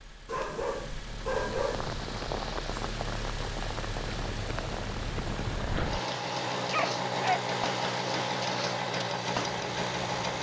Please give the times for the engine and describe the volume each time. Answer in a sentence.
The engine can be heard from 0.0 to 10.3 s, getting louder.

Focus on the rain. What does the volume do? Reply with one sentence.
The volume of the rain stays about the same.